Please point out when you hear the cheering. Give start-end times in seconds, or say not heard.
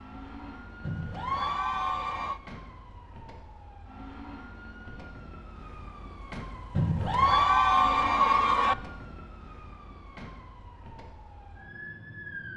0.8-2.4, 6.8-8.8.